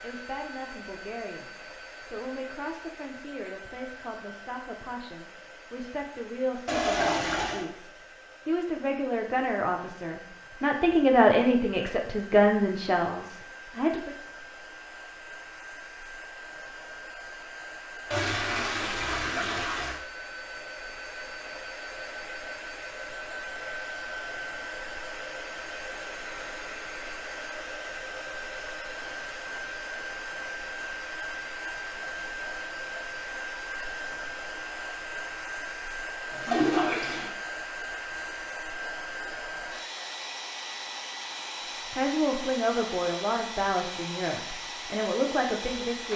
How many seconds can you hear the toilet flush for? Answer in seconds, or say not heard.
4 s.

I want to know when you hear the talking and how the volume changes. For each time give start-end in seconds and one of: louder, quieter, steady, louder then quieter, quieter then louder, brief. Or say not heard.
0.0-14.2 louder
41.9-46.1 quieter then louder.